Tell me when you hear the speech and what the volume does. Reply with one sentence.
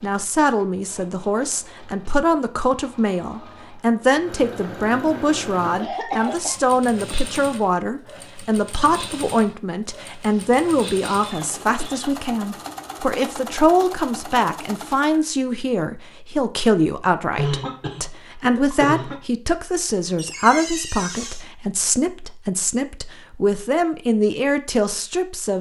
The speech can be heard from 0.0 to 25.5 s, at a steady volume.